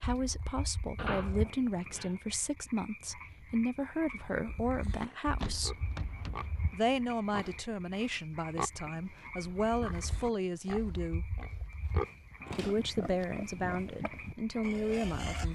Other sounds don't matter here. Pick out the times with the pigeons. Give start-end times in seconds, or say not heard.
not heard.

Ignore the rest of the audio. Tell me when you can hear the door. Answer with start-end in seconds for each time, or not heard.
0.9-2.2, 5.3-6.8, 12.4-13.2.